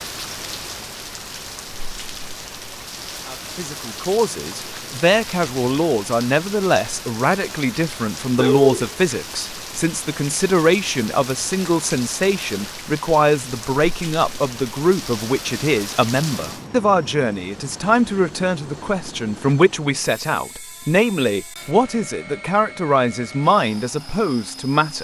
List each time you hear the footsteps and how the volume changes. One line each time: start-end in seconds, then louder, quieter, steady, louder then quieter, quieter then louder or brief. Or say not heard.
not heard.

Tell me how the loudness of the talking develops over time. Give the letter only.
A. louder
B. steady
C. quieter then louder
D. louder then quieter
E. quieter
B.